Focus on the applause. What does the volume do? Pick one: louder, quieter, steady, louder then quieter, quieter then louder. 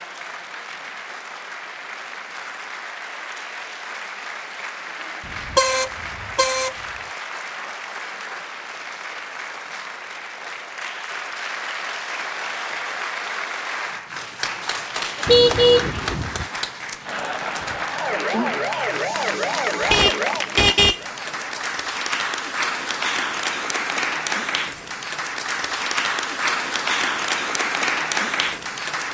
louder.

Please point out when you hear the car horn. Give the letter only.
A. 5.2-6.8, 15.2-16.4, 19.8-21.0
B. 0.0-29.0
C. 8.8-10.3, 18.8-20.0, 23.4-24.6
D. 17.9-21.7
A.